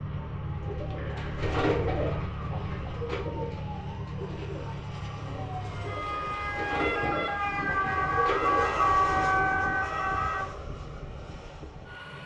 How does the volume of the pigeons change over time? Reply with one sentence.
The loudness of the pigeons goes down, then up.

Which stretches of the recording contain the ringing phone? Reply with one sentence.
The ringing phone can't be heard in this clip.